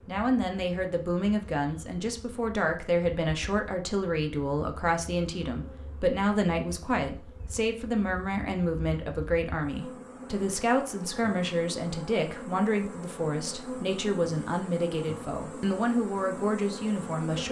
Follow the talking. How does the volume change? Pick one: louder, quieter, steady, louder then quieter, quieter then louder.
steady.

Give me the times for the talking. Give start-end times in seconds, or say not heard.
0.1-17.4.